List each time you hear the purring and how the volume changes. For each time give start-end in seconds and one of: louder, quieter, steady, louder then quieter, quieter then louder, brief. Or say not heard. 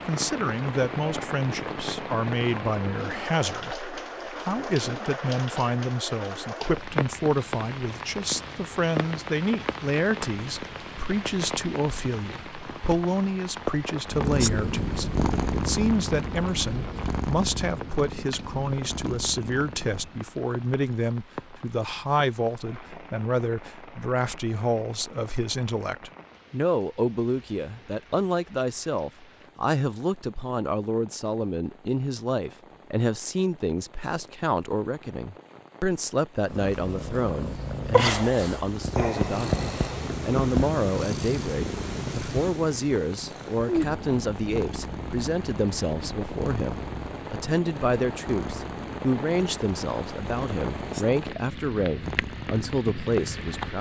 14.1-20.2 quieter
36.5-53.7 quieter.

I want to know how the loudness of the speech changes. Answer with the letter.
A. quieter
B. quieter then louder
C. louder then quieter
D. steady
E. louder
D.